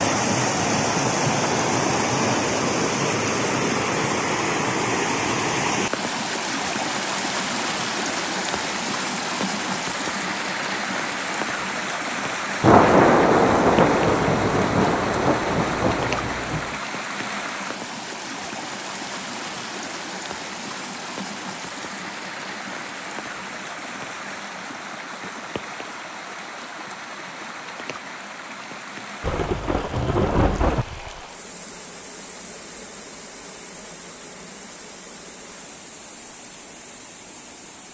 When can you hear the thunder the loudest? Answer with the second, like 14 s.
13 s.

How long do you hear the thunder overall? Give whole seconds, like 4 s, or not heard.
6 s.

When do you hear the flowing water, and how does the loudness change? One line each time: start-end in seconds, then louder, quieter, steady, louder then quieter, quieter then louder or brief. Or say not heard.
0.0-37.8 quieter.